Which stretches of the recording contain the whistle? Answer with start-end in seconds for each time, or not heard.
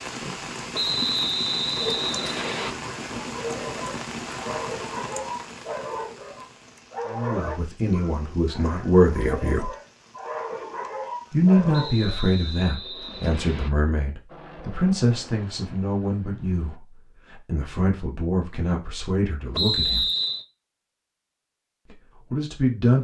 0.7-2.8, 11.7-13.7, 19.5-20.4.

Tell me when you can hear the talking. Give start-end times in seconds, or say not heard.
7.0-9.7, 11.3-20.1, 21.9-22.9.